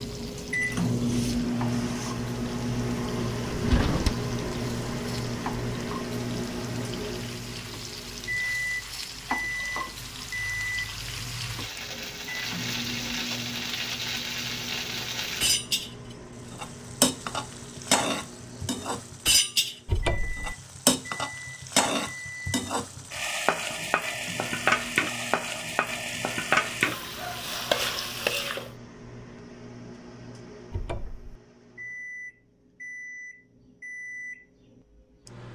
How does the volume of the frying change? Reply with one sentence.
The loudness of the frying goes up.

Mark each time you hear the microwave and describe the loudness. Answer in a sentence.
The microwave can be heard from 0.0 to 35.5 s, getting quieter.